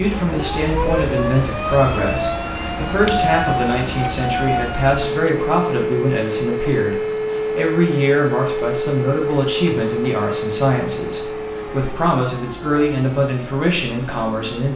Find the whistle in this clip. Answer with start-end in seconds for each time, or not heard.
not heard.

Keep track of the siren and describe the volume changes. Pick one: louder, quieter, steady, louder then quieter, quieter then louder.
quieter.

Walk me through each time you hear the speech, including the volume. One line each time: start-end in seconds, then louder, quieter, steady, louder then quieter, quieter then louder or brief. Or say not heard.
0.0-14.7 steady.